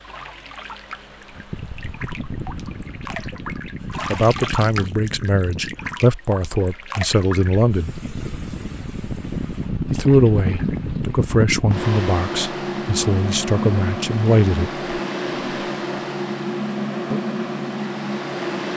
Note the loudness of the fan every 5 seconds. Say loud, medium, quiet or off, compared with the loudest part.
medium, medium, loud, loud.